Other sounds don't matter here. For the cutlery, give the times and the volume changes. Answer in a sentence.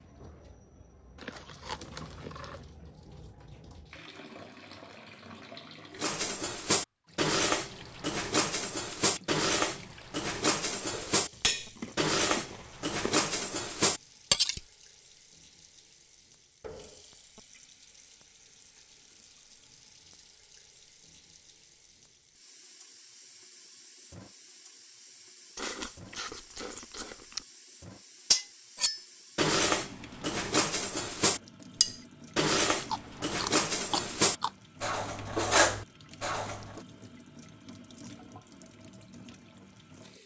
You can hear the cutlery from 6.0 to 14.6 s, at a steady volume; and from 28.3 to 36.8 s, at a steady volume.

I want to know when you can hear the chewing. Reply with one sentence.
You can hear the chewing from 1.1 to 2.6 s, from 11.3 to 13.2 s, from 25.6 to 27.4 s and from 32.7 to 34.5 s.